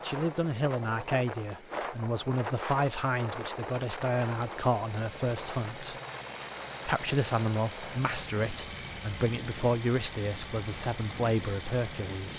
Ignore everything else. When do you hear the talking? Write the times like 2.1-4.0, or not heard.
0.0-6.0, 6.8-12.3.